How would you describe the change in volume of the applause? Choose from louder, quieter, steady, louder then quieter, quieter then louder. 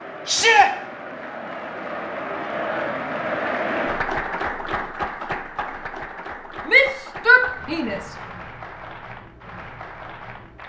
louder then quieter.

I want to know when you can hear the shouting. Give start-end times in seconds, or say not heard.
0.2-0.7, 6.7-8.1.